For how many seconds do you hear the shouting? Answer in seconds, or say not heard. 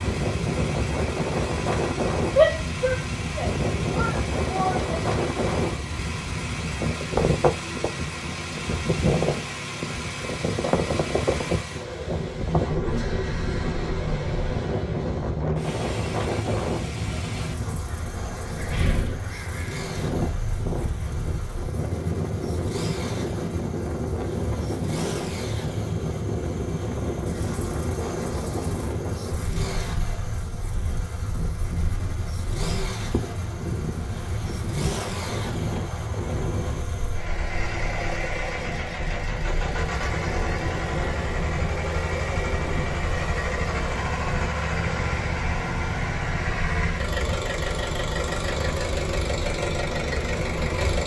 3 s.